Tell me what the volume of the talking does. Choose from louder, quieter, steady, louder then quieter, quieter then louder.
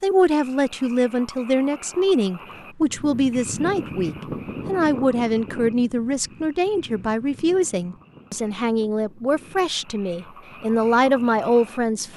steady.